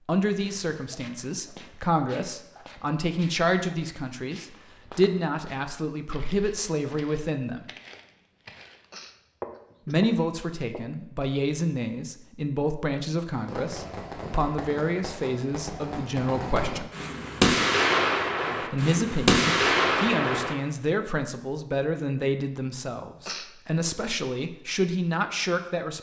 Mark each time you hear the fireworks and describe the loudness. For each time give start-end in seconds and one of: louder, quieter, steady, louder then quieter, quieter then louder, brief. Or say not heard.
13.2-20.6 louder.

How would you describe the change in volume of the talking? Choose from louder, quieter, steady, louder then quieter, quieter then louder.
steady.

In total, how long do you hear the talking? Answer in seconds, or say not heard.
22 s.